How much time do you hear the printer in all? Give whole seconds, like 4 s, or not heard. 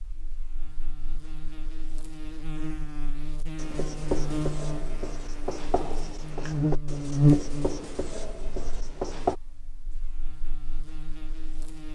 not heard.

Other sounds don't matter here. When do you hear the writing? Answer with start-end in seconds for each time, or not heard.
3.5-9.3.